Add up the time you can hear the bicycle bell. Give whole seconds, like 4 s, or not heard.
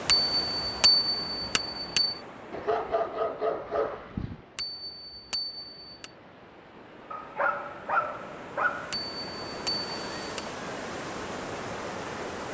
5 s.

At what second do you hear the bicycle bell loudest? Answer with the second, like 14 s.
1 s.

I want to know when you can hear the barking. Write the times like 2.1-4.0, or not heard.
2.5-4.4, 7.1-8.9.